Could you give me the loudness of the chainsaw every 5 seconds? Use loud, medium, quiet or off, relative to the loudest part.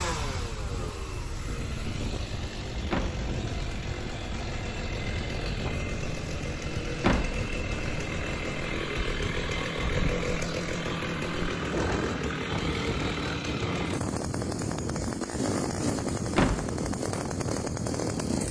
medium, loud, loud, loud.